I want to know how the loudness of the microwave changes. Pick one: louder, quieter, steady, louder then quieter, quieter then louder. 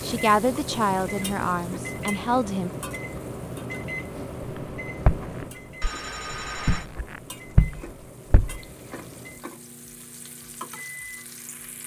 quieter.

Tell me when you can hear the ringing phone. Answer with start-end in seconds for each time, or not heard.
5.8-6.9.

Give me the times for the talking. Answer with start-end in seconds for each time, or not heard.
0.0-2.7.